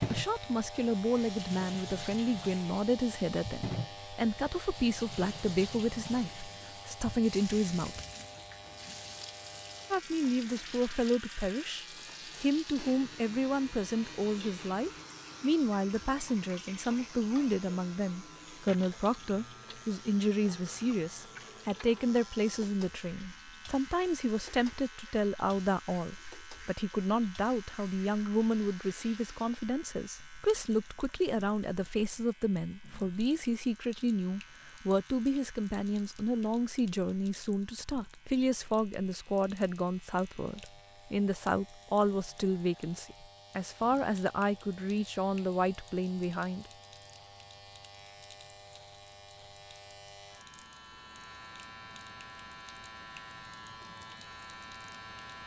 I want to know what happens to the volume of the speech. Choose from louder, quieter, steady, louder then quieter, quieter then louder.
steady.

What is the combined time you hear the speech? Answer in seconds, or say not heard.
45 s.